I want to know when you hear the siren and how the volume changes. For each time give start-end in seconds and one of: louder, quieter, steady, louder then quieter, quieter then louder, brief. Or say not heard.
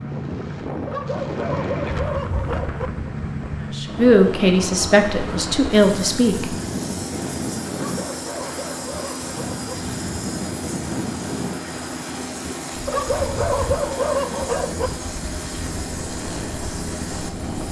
not heard.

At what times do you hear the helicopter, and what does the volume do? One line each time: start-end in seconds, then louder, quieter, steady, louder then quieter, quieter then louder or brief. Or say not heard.
0.0-17.6 steady.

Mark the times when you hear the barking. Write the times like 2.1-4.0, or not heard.
0.8-2.9, 7.8-9.7, 12.8-14.9.